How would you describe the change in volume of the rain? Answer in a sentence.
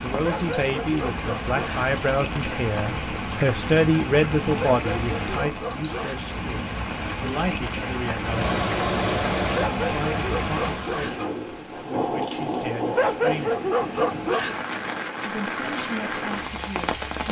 The volume of the rain stays about the same.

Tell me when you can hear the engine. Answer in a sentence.
The engine can be heard from 8.2 to 11.3 s.